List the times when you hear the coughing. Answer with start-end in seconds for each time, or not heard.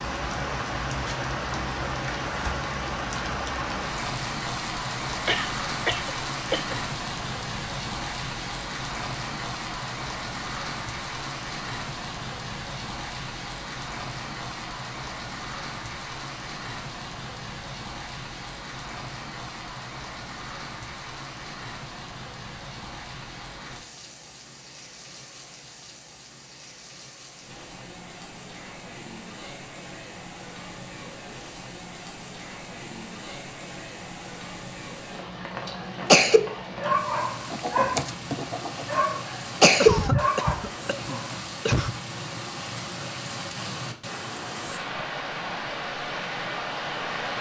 5.2-6.8, 39.8-42.0.